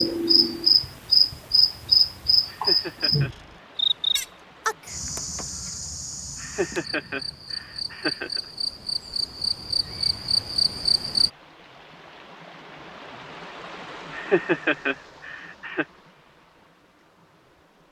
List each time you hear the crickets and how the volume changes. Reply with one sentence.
You can hear the crickets from 0.0 to 11.3 s, getting quieter then louder.